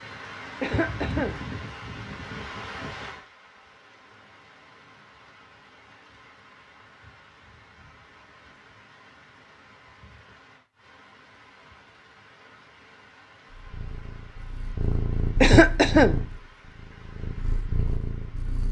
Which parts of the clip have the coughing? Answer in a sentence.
The coughing can be heard from 0.6 to 1.4 s and from 15.4 to 16.2 s.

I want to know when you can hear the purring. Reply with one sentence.
The purring can be heard from 13.5 to 18.6 s.